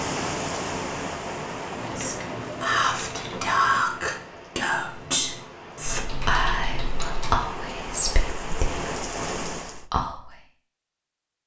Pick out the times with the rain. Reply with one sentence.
The rain can be heard from 0.0 to 9.8 s.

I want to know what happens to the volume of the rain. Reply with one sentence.
The loudness of the rain goes down, then up.